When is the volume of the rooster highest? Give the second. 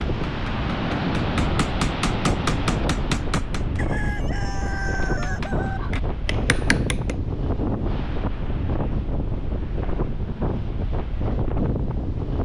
5 s.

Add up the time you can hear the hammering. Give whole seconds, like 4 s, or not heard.
6 s.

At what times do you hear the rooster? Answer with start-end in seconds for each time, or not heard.
3.8-5.8.